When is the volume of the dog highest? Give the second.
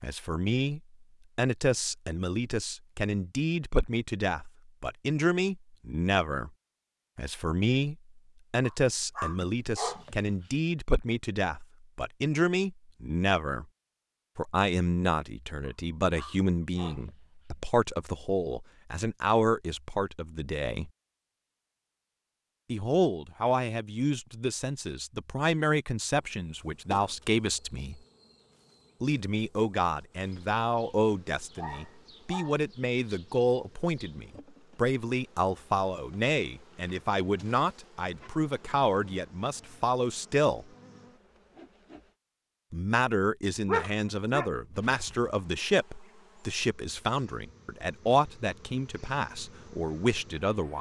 44 s.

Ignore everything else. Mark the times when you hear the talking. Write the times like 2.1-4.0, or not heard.
0.0-6.5, 7.2-13.7, 14.3-20.9, 22.7-28.0, 29.0-40.6, 42.7-50.7.